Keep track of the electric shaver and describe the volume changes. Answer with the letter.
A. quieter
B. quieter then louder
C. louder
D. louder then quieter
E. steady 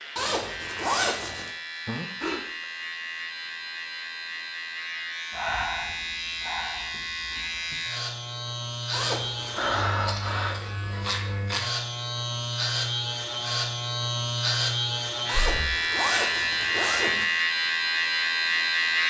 C.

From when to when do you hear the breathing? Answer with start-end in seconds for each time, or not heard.
1.9-2.4, 5.3-7.8, 9.6-10.6, 15.3-15.8.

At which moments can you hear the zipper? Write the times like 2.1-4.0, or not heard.
0.1-1.5, 8.9-9.7, 15.2-17.2.